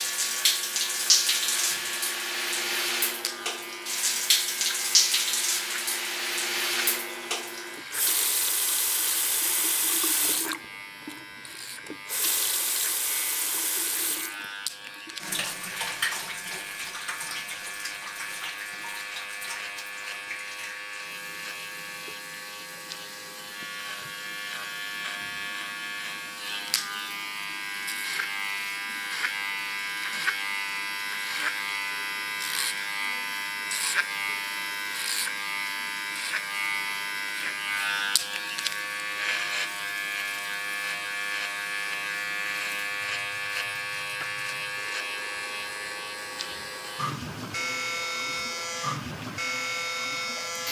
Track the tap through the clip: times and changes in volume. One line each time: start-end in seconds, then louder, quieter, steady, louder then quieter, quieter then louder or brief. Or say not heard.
0.0-50.6 quieter.